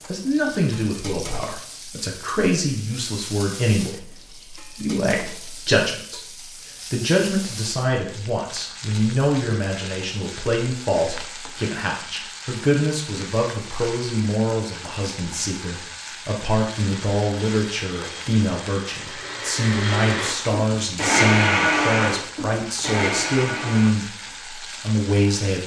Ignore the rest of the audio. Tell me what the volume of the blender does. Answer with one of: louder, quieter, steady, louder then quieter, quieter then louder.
louder then quieter.